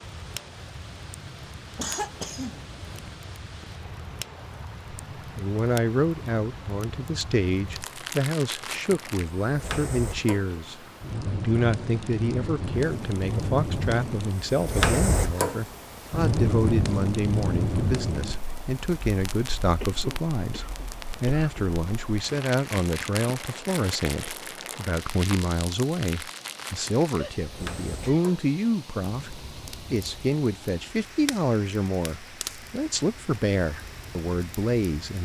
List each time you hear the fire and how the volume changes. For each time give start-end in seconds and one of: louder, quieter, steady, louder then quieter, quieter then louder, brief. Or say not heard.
0.0-35.2 louder then quieter.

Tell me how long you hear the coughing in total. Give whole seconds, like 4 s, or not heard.
4 s.